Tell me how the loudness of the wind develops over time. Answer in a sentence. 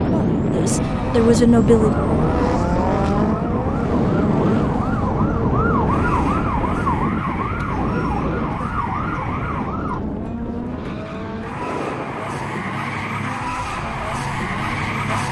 The loudness of the wind goes down.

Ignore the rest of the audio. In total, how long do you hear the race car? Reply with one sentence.
You can hear the race car for 15 seconds altogether.